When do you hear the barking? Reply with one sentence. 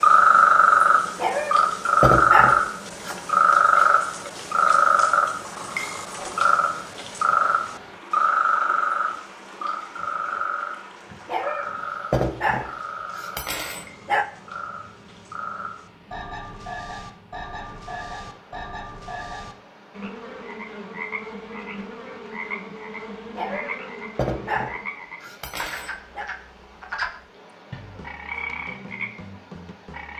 You can hear the barking from 1.1 to 3.1 s, from 11.2 to 14.2 s and from 23.4 to 26.3 s.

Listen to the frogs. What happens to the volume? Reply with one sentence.
The loudness of the frogs goes down.